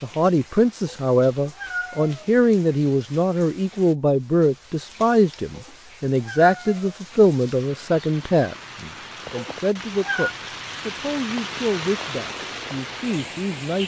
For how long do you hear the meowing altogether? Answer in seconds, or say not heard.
4 s.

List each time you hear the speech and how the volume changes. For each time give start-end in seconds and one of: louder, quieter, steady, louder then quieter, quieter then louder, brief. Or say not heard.
0.0-13.8 quieter.